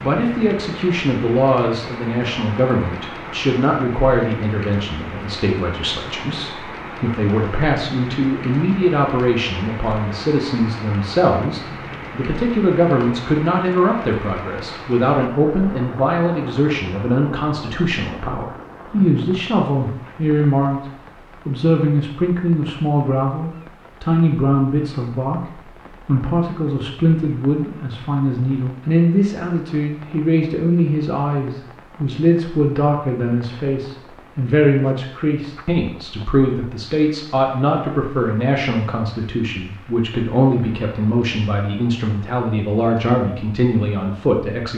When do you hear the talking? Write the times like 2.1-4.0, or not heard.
0.0-20.8, 21.4-44.7.